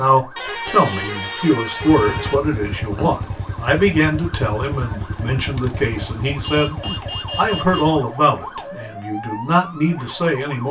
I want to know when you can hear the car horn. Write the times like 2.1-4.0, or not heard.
0.3-2.4, 6.4-7.8.